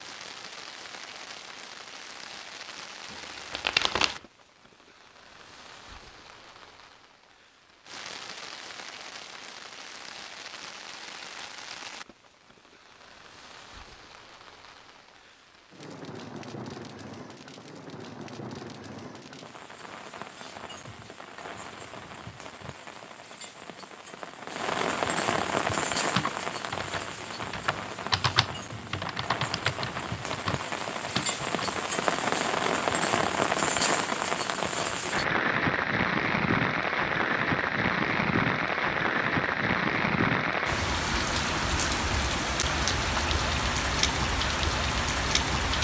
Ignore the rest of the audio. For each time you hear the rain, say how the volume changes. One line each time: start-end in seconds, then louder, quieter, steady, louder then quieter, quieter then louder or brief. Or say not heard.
0.0-45.7 louder.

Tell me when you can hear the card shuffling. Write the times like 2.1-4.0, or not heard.
3.1-4.2.